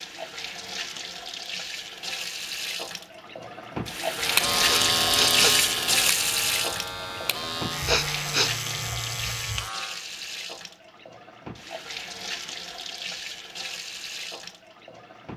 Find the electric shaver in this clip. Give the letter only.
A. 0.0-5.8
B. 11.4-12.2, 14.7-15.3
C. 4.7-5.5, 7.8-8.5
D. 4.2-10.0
D.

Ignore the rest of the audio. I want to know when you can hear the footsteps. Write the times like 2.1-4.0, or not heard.
not heard.